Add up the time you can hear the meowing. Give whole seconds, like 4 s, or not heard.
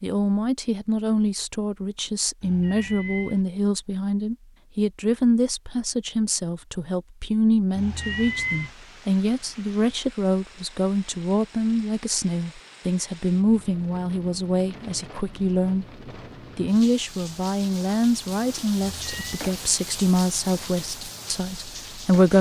3 s.